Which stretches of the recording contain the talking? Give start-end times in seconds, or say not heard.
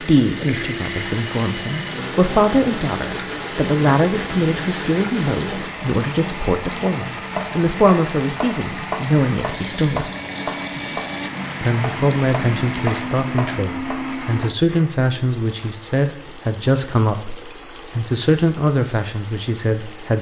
0.0-10.1, 11.6-20.1.